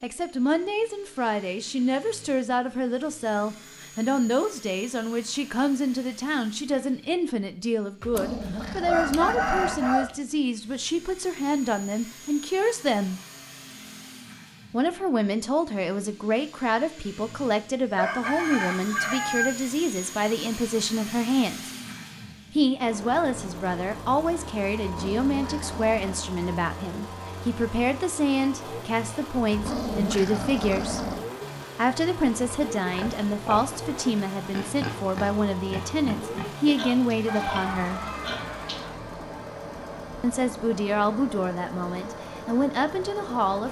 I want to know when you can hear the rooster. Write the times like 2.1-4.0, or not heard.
8.2-10.2, 17.9-19.5, 37.2-39.0.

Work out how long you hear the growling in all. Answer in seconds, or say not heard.
5 s.